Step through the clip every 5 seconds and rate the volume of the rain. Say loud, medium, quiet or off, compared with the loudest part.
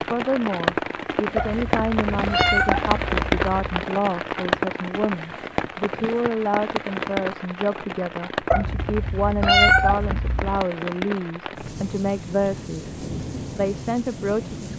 loud, medium, medium.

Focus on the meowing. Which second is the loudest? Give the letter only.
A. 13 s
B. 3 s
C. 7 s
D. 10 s
D.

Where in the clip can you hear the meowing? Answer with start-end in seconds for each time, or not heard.
1.4-3.9, 8.5-10.6.